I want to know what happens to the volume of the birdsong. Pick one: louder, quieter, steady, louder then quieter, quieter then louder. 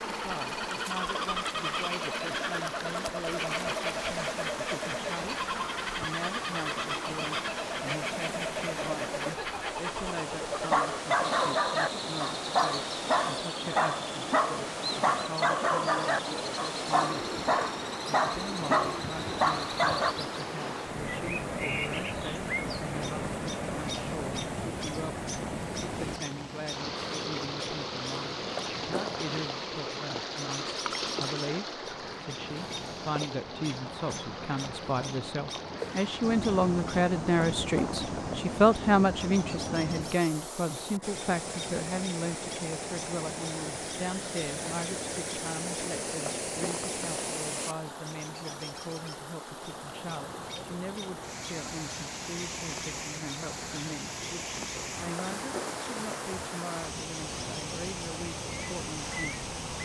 quieter.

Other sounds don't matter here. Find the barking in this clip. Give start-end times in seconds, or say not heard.
10.7-20.1.